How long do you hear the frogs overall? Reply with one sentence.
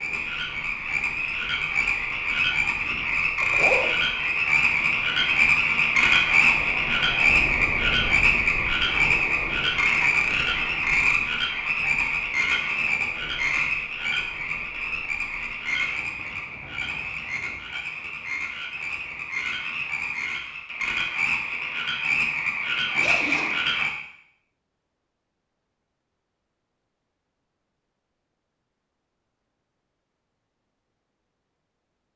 The frogs can be heard for 24 seconds in total.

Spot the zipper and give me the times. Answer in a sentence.
You can hear the zipper from 3.0 to 4.0 s and from 22.9 to 23.6 s.